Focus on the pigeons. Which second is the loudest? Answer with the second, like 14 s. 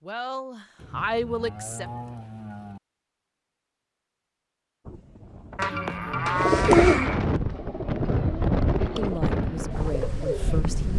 7 s.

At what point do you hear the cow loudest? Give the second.
6 s.